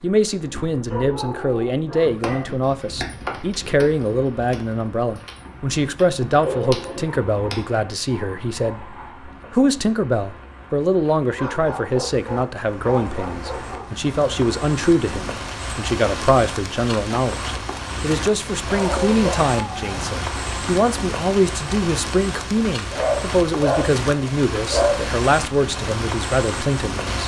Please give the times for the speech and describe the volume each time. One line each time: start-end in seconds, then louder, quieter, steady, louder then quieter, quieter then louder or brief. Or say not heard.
0.0-27.2 steady.